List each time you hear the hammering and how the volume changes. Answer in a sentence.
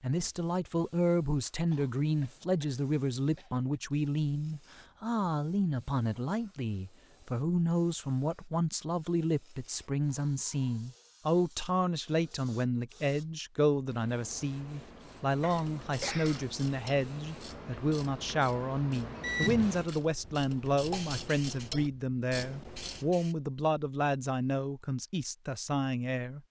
You can't hear the hammering here.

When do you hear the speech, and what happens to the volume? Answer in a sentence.
You can hear the speech from 0.0 to 26.4 s, at a steady volume.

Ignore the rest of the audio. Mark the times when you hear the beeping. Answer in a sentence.
You can hear the beeping from 19.2 to 20.0 s.